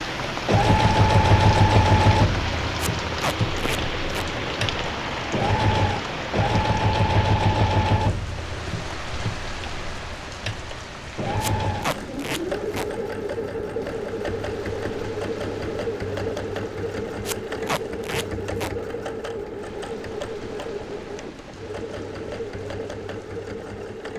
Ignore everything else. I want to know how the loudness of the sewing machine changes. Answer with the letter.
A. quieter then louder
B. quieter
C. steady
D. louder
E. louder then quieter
B.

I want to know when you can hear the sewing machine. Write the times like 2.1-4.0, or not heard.
0.0-24.1.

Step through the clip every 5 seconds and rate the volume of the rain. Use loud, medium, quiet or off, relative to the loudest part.
loud, loud, quiet, quiet, quiet.